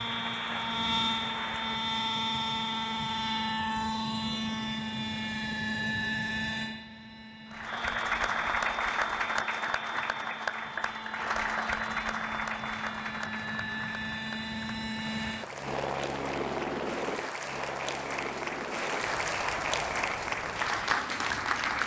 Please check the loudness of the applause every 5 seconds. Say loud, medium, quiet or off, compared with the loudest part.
medium, loud, medium, medium, loud.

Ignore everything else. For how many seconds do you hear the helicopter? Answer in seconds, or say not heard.
22 s.